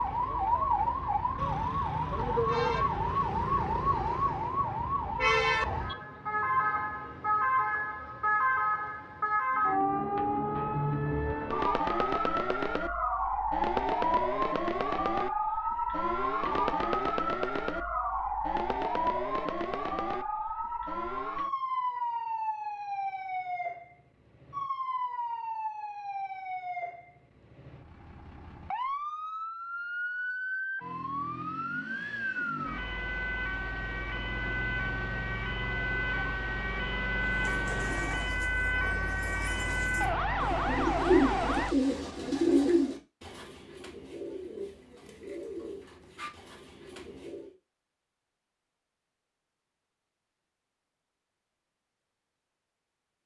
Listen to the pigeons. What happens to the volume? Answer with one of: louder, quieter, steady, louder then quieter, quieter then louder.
louder then quieter.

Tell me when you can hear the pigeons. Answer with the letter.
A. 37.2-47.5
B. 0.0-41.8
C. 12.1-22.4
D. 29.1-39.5
A.